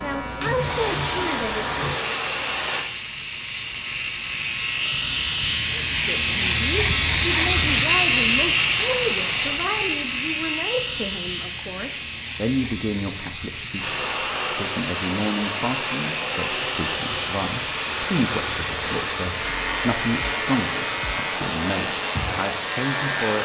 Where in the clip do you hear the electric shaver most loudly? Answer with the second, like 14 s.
8 s.